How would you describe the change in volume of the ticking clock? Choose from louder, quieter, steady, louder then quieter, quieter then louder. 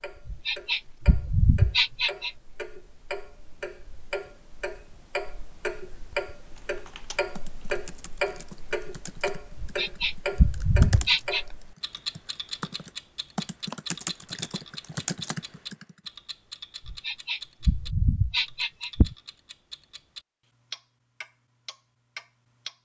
louder then quieter.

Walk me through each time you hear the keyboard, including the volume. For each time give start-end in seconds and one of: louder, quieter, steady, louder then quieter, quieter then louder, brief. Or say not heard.
6.5-15.9 louder.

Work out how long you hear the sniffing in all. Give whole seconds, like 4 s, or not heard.
6 s.